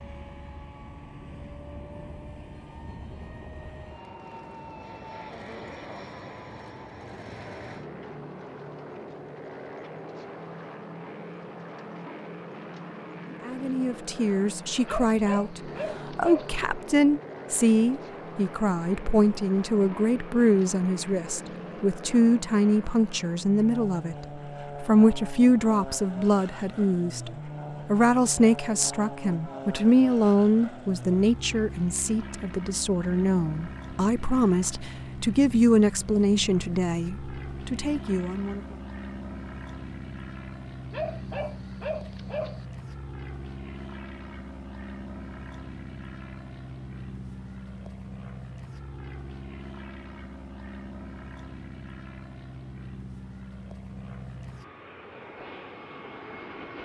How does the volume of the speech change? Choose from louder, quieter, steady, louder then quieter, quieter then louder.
steady.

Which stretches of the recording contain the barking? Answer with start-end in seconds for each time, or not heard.
14.8-16.6, 40.9-42.6.